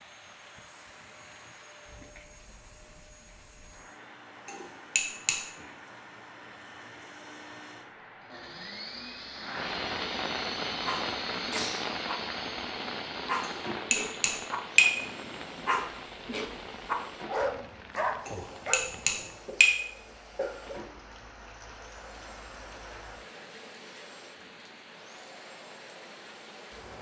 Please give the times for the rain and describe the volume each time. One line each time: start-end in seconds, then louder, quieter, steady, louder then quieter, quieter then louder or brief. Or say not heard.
0.0-26.9 louder then quieter.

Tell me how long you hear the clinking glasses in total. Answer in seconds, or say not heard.
4 s.